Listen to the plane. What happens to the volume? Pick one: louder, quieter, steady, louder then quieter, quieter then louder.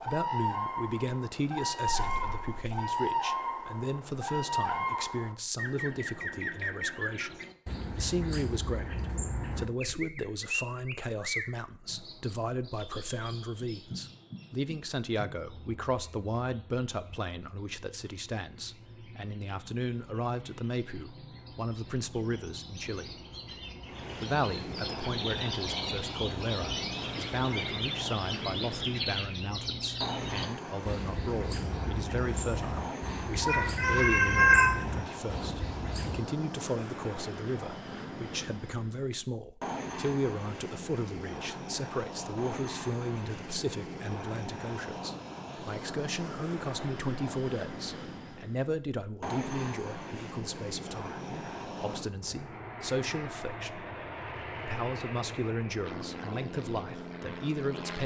steady.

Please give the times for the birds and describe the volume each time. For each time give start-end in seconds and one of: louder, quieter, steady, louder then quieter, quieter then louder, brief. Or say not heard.
0.0-36.2 quieter then louder.